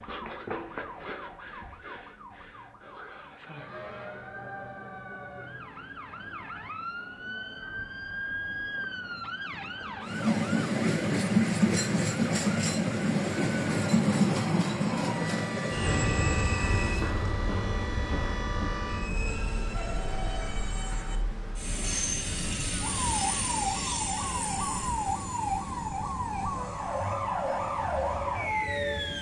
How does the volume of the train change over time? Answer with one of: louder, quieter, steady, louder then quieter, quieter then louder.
quieter.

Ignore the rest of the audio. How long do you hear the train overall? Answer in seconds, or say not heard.
19 s.